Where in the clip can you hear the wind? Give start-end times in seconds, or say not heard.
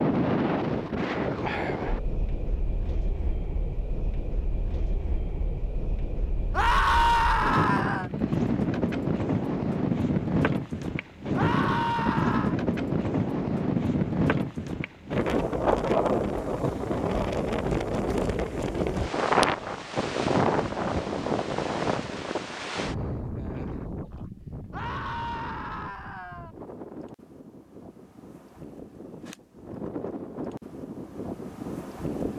0.0-32.3.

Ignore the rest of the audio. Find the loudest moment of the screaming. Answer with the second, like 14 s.
7 s.